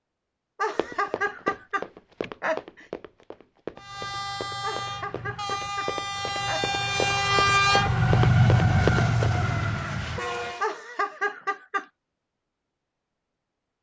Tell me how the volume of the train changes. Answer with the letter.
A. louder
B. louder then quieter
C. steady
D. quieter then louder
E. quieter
B.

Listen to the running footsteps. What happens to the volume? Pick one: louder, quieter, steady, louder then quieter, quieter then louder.
quieter then louder.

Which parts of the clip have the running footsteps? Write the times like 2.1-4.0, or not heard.
0.8-9.4.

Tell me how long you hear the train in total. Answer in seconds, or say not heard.
7 s.